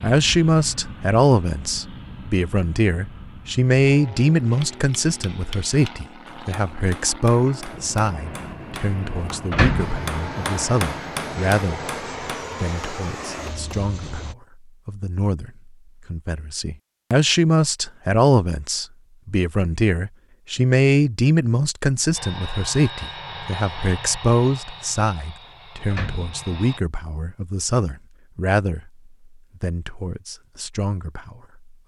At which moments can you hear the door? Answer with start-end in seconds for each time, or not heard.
9.5-10.1, 25.9-26.6.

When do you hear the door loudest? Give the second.
10 s.